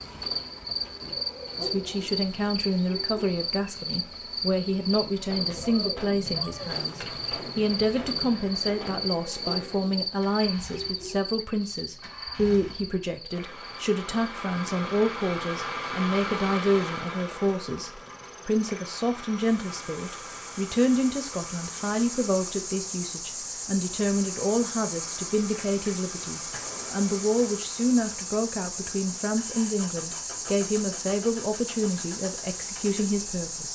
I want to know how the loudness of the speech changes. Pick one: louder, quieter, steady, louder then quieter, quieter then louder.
steady.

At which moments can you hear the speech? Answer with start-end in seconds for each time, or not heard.
1.6-33.6.